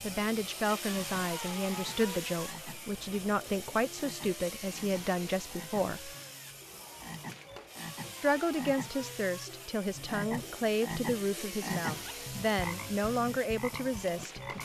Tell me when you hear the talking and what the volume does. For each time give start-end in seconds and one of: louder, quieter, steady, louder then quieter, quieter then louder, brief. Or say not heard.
0.0-6.1 steady
8.2-14.5 steady.